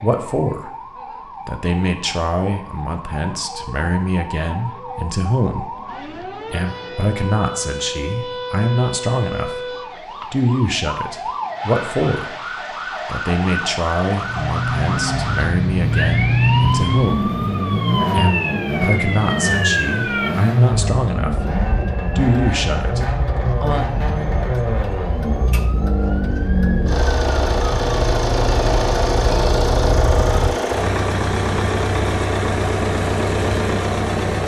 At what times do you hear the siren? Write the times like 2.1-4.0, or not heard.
0.0-30.6.